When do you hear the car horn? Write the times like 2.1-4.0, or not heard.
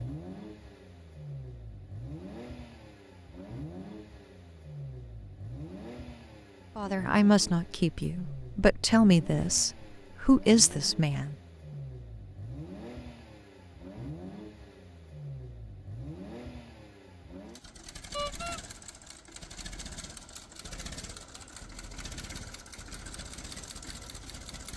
18.1-18.6.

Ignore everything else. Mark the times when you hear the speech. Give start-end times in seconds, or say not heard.
6.8-11.3.